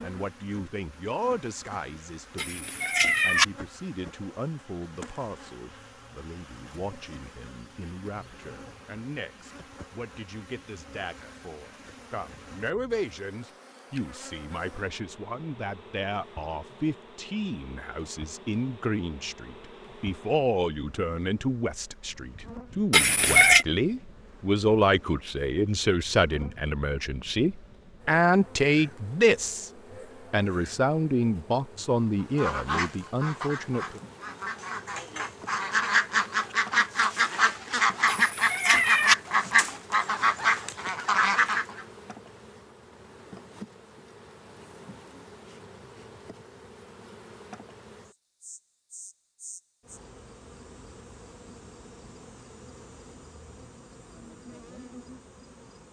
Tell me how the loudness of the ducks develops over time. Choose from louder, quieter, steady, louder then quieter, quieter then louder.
louder.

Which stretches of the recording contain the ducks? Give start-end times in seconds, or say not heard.
32.4-41.9.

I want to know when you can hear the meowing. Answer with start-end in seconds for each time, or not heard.
2.4-3.5, 22.9-23.6, 38.0-39.1.